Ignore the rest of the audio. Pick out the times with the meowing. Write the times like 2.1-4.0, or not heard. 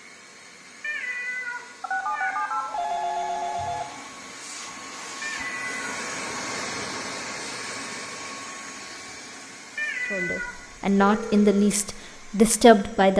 0.8-2.8, 5.2-5.8, 9.8-10.6.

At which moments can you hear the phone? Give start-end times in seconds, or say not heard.
1.8-3.9, 10.4-11.7.